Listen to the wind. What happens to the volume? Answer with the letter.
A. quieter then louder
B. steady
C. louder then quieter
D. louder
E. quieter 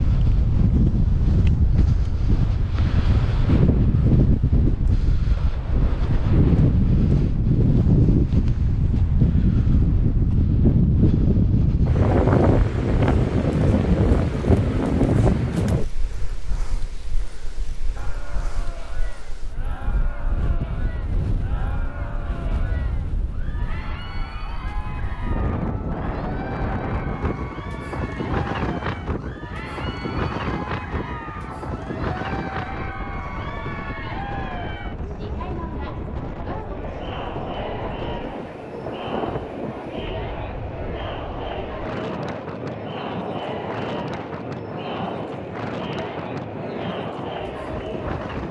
E.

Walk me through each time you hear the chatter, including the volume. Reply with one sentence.
You can hear the chatter from 17.9 to 48.4 s, getting louder.